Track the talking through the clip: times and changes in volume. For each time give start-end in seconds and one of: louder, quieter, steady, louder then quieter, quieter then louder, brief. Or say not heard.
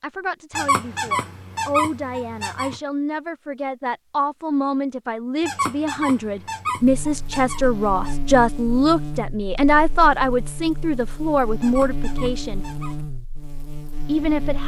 0.0-12.7 louder
14.1-14.6 brief.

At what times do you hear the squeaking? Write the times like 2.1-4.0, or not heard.
0.5-2.8, 5.4-8.2, 11.6-12.9.